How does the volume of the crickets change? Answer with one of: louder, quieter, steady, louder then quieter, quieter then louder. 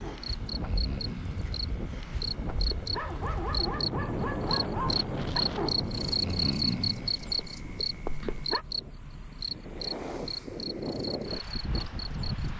louder then quieter.